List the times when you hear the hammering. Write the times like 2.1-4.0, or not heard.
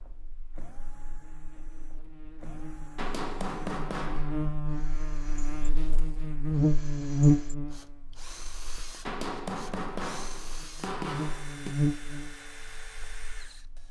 3.0-4.5, 9.1-11.8.